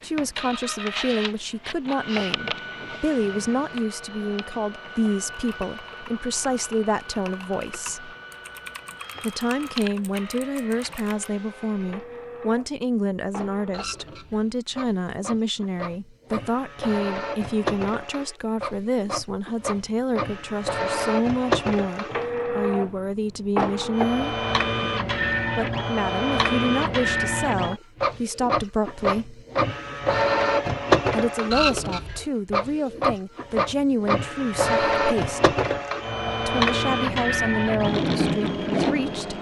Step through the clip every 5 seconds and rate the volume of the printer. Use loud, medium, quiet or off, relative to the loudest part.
medium, quiet, quiet, medium, loud, loud, loud, loud.